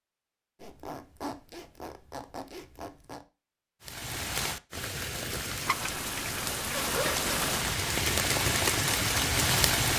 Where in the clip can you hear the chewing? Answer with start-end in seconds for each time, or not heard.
not heard.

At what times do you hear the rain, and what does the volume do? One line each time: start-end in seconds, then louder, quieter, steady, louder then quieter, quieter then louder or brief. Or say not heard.
3.8-9.9 louder.